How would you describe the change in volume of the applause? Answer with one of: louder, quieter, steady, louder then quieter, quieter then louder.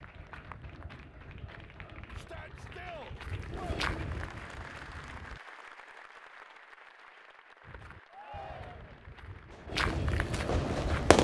louder then quieter.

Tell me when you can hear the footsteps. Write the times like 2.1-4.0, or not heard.
0.0-5.4, 7.6-11.2.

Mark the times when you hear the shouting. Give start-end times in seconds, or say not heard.
2.1-3.8, 8.1-9.0.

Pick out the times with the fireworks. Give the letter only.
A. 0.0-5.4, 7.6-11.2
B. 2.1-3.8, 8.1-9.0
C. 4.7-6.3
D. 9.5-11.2
D.